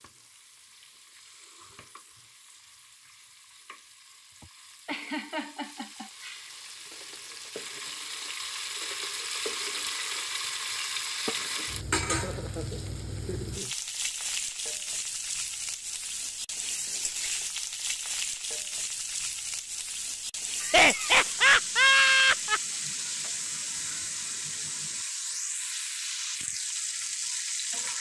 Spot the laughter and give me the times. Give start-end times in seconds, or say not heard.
4.4-6.5, 12.1-13.8, 20.6-22.6.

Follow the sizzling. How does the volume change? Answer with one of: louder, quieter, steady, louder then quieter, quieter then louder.
louder.